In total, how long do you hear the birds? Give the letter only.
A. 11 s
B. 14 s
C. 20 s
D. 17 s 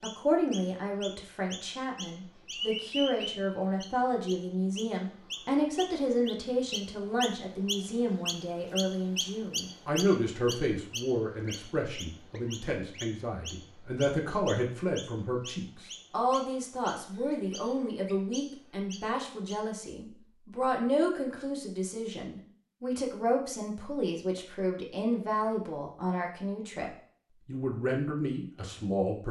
C.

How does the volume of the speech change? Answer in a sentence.
The loudness of the speech stays about the same.